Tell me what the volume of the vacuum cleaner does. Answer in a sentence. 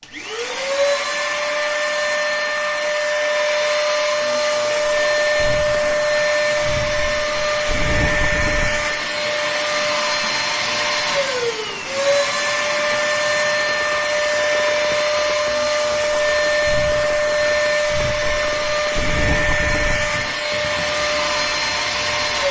The volume of the vacuum cleaner stays about the same.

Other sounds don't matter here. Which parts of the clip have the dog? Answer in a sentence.
You can't hear the dog here.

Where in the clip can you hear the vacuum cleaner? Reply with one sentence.
You can hear the vacuum cleaner from 0.0 to 22.4 s.